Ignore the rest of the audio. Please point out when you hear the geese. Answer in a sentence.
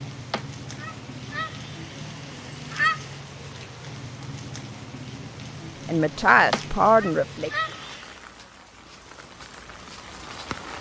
The geese can be heard from 0.3 to 3.2 s and from 6.5 to 8.2 s.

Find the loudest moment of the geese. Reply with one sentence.
The loudest moment of the geese is at 3 seconds.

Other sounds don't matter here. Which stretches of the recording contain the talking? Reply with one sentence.
The talking can be heard from 5.8 to 7.5 s.